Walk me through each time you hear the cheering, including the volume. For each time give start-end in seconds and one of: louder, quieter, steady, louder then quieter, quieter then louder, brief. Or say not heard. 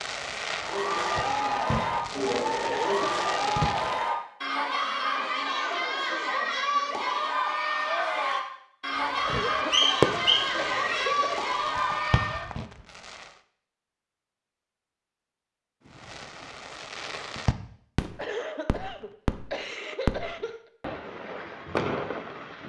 0.6-12.5 steady.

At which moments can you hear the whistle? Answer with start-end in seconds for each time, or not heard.
9.7-11.1.